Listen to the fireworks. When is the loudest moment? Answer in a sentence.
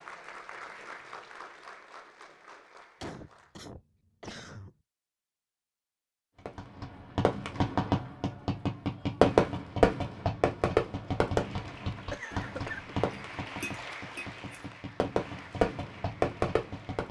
The loudest moment of the fireworks is at 9 seconds.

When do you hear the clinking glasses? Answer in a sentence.
The clinking glasses can be heard from 13.1 to 14.7 s.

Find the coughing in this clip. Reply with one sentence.
The coughing can be heard from 3.0 to 4.7 s and from 12.1 to 13.0 s.